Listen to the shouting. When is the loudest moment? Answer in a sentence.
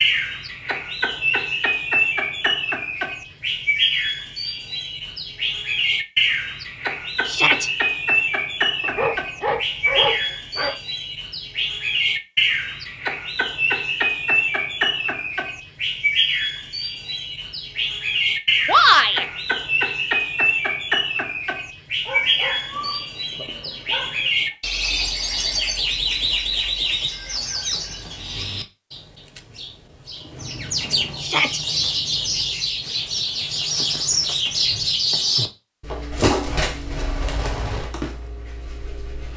The volume of the shouting peaks at 19 seconds.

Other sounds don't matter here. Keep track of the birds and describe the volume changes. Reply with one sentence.
The loudness of the birds stays about the same.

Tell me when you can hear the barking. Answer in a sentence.
The barking can be heard from 8.8 to 10.8 s and from 22.1 to 24.4 s.